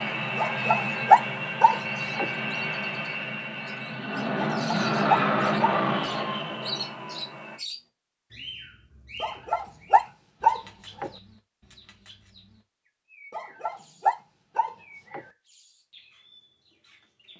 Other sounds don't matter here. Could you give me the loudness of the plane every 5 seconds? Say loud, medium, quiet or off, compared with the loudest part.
loud, loud, off, off.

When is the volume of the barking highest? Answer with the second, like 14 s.
1 s.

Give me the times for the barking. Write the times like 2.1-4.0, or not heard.
0.3-2.2, 4.5-6.2, 9.2-11.1, 13.3-15.2.